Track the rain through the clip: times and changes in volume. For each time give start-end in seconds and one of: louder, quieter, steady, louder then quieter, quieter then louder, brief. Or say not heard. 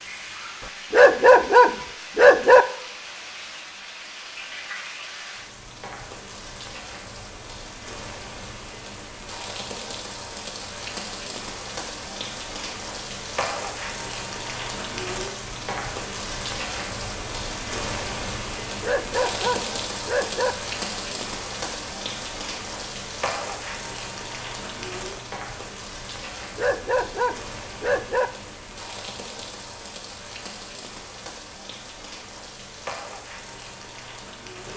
0.0-34.7 louder then quieter.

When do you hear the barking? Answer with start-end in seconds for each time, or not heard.
0.9-2.6, 18.8-20.6, 26.6-28.3.